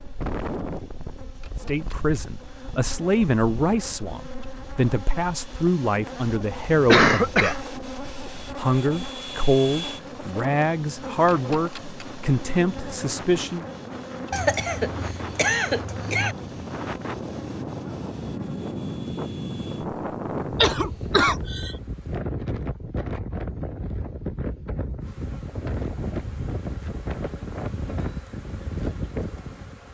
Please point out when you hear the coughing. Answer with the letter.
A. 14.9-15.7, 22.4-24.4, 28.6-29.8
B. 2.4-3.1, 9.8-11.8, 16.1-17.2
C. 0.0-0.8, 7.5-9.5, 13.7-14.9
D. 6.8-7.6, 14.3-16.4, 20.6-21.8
D.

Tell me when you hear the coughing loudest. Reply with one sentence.
The volume of the coughing peaks at 7 seconds.